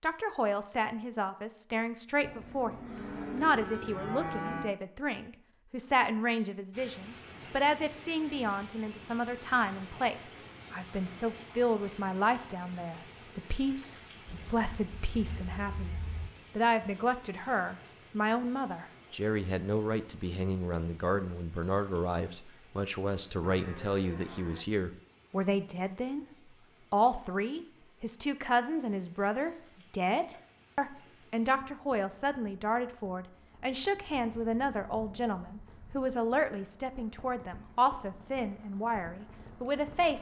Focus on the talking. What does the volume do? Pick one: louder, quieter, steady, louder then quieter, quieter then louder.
steady.